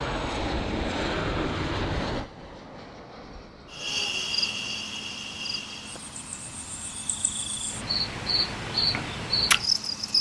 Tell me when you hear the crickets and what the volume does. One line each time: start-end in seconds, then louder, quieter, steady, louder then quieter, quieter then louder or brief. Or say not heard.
3.7-10.1 quieter then louder.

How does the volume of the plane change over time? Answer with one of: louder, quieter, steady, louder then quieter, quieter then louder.
quieter.